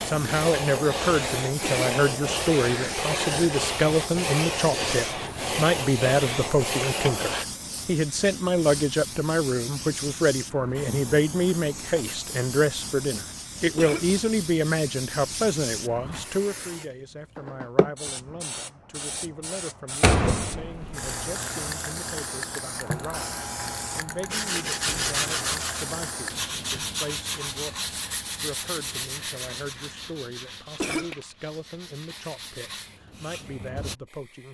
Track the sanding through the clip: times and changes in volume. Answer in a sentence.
The sanding can be heard from 0.0 to 7.5 s, at a steady volume; and from 24.3 to 34.0 s, getting quieter.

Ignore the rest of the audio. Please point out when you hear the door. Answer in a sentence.
You can hear the door from 20.0 to 21.1 s.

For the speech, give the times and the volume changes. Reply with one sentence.
You can hear the speech from 0.1 to 34.5 s, getting quieter.